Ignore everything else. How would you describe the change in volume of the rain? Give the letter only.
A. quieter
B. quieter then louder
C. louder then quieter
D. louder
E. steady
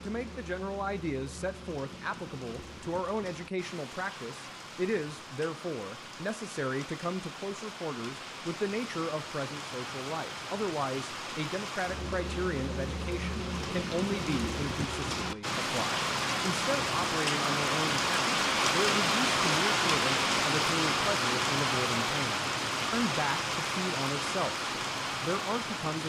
D.